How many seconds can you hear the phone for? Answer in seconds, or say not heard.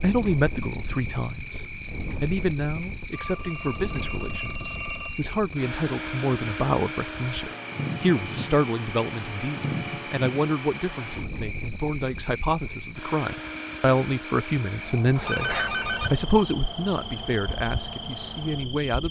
3 s.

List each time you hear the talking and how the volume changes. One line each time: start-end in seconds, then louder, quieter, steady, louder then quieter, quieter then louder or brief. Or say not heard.
0.0-19.0 steady.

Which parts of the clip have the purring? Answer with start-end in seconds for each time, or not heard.
not heard.